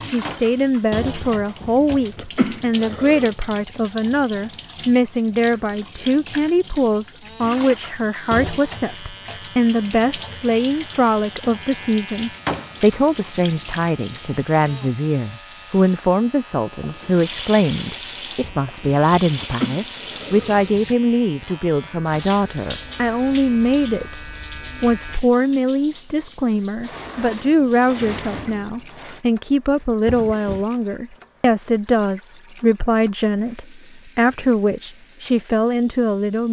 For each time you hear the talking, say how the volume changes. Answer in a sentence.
The talking can be heard from 0.0 to 36.4 s, at a steady volume.